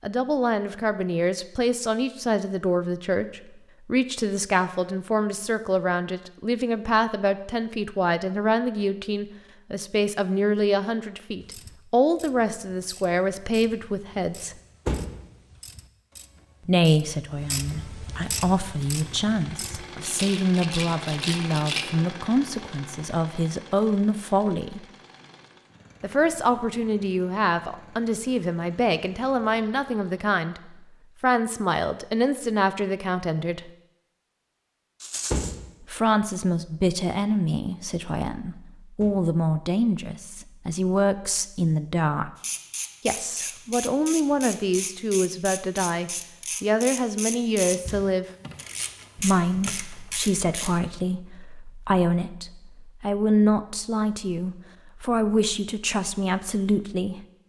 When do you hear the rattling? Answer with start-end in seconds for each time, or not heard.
20.0-21.9, 35.0-35.5.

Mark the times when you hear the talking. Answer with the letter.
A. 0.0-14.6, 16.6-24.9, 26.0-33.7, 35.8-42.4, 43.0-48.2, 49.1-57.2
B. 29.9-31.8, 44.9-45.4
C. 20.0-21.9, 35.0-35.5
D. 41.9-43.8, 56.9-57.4
A.